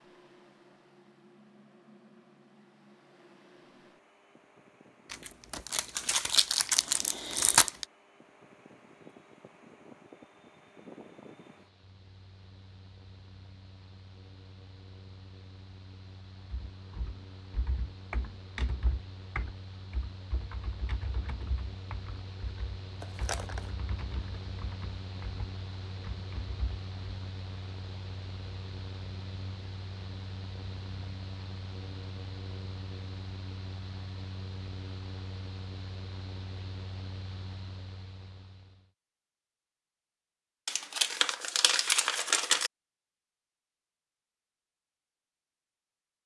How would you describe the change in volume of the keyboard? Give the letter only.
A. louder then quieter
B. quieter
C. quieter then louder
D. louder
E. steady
B.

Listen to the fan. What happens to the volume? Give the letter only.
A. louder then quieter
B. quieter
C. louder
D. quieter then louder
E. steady
C.